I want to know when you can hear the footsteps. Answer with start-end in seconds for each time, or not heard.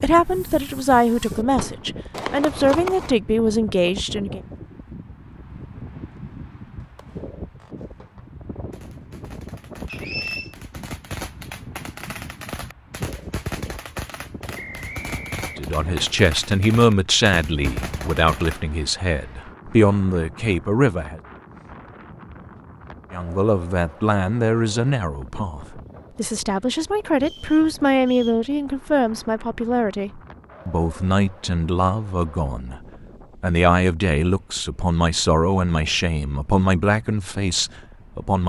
not heard.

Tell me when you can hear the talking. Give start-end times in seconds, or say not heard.
0.0-4.4, 15.6-21.2, 23.1-32.8, 33.4-38.4.